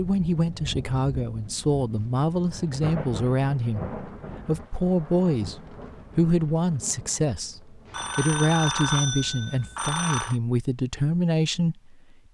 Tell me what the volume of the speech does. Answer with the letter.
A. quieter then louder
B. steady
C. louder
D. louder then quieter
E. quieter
B.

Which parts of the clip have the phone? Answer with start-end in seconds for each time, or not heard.
7.9-10.3.